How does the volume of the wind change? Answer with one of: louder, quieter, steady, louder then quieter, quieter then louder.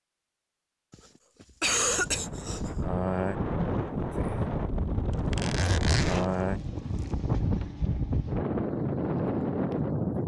steady.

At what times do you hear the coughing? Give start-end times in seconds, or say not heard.
0.9-2.7.